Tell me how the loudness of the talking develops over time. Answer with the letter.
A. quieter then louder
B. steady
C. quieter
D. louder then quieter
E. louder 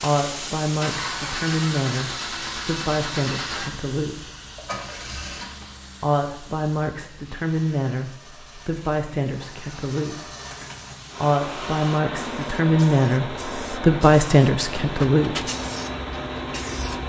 E.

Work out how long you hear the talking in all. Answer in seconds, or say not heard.
13 s.